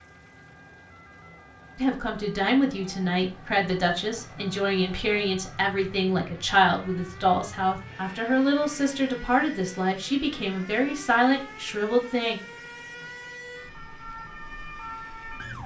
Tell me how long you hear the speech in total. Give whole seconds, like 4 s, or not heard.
11 s.